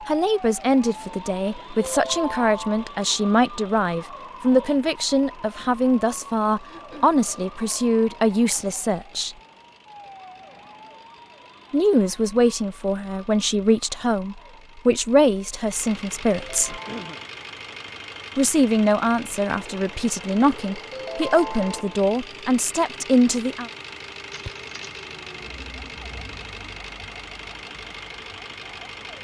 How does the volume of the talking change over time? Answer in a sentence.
The volume of the talking stays about the same.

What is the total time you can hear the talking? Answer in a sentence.
You can hear the talking for 20 seconds altogether.